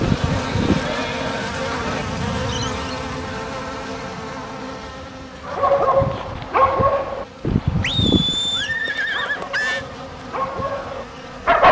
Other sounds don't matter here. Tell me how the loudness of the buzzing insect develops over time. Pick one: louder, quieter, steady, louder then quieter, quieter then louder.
quieter.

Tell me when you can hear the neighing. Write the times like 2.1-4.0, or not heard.
0.0-2.0, 7.8-9.8.